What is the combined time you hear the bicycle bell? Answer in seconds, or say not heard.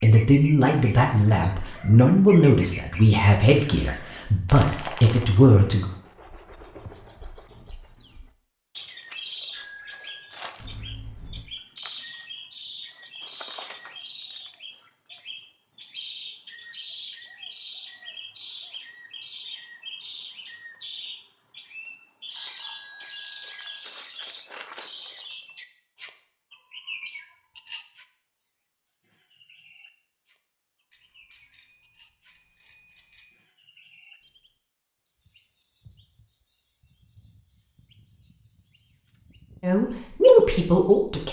6 s.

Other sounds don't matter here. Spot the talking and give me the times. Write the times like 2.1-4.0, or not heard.
0.0-5.9, 39.6-41.2.